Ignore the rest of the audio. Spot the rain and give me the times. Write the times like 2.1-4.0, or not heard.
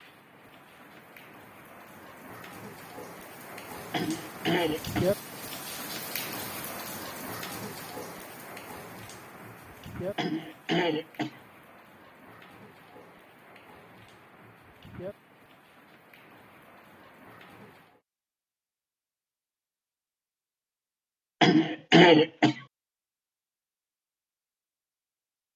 0.0-18.0.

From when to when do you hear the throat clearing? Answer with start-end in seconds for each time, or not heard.
3.9-5.0, 10.2-11.3, 21.4-22.6.